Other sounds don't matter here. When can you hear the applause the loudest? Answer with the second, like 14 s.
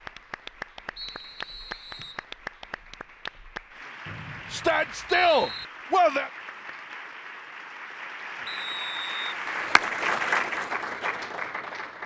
10 s.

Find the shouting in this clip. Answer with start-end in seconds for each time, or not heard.
4.5-6.3.